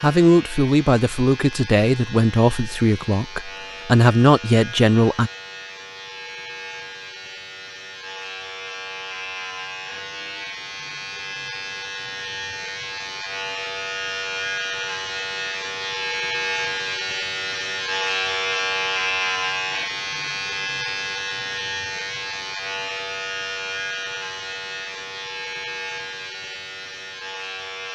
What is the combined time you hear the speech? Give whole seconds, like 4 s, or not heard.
5 s.